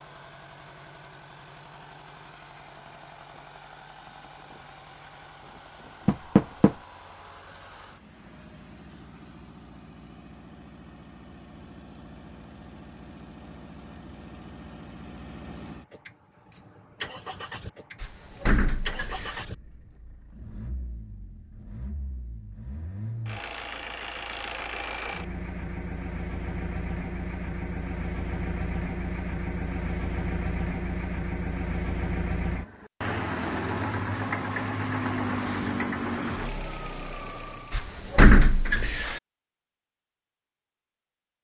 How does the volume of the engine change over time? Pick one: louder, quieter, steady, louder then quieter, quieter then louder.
louder.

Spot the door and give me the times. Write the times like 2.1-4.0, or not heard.
6.0-6.7, 18.0-19.4, 37.7-39.2.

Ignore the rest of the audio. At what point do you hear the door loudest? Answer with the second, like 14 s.
38 s.